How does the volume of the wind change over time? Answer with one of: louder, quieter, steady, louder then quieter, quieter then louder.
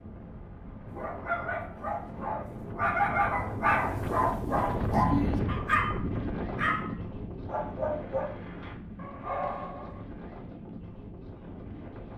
louder then quieter.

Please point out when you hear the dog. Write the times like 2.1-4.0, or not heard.
0.8-10.1.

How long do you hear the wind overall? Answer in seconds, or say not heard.
12 s.